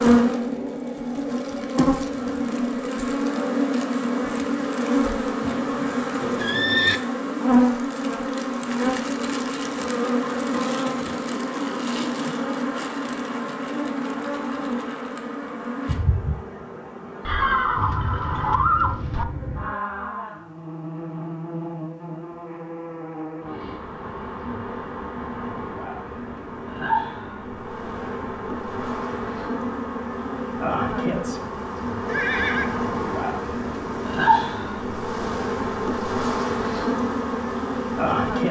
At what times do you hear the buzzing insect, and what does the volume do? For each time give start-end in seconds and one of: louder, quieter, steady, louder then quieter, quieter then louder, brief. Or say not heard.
0.0-38.4 quieter then louder.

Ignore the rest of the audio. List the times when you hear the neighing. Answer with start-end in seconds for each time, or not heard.
5.4-7.0, 17.2-19.2, 32.0-32.8.